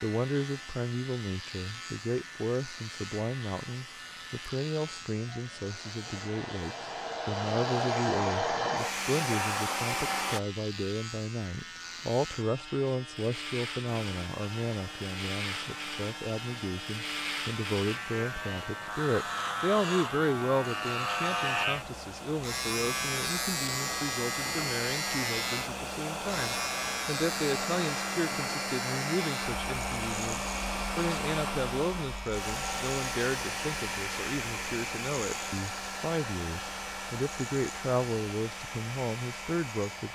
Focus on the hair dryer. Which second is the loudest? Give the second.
8 s.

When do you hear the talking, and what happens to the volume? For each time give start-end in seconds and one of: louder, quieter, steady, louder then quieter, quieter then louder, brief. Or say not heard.
0.0-40.1 steady.